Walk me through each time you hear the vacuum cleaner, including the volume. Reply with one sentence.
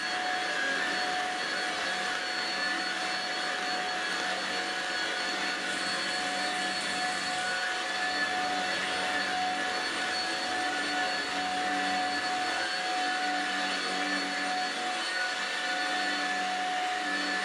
You can hear the vacuum cleaner from 0.0 to 17.4 s, at a steady volume.